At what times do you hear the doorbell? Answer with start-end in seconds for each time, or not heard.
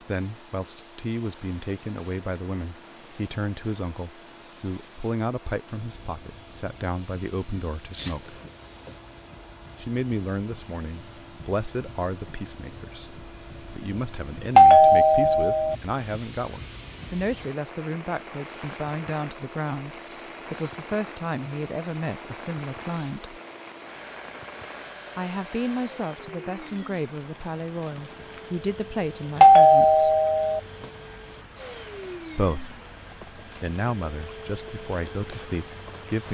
8.0-8.9, 14.6-15.8, 29.4-30.6.